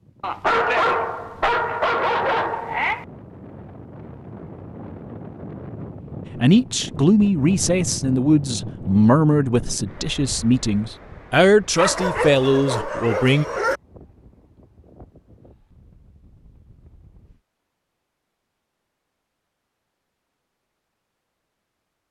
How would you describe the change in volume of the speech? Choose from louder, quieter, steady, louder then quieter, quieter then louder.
steady.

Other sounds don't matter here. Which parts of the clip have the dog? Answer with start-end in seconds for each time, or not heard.
0.2-3.0, 11.8-13.8.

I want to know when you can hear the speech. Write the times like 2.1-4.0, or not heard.
6.3-13.4.